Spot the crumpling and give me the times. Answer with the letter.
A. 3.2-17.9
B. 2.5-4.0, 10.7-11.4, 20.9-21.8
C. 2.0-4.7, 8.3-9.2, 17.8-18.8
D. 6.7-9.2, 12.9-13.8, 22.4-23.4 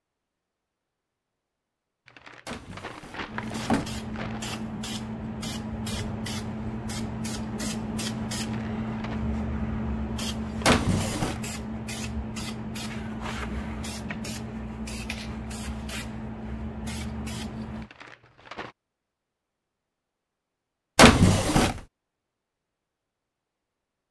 C.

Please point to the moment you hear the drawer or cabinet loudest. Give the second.
21 s.